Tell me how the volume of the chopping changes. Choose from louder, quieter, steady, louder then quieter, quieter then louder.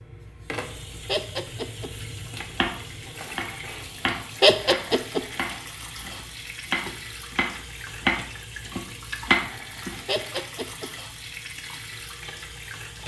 louder.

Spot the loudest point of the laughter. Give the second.
5 s.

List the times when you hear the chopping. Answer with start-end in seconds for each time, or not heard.
2.5-9.9.